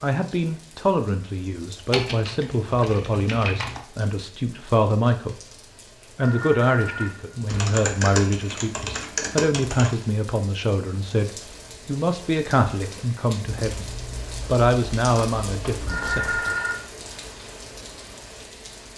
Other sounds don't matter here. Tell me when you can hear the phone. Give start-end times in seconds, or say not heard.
6.2-7.7, 15.8-16.8.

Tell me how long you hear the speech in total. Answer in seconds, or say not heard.
16 s.